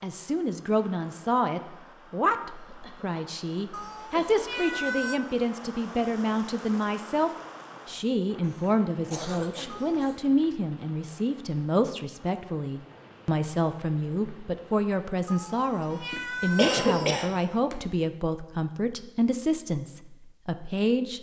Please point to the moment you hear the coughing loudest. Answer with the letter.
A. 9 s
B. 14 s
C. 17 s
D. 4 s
C.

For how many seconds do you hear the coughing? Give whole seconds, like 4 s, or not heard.
6 s.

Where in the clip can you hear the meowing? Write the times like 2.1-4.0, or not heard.
3.7-5.2, 9.7-10.1, 15.2-17.1.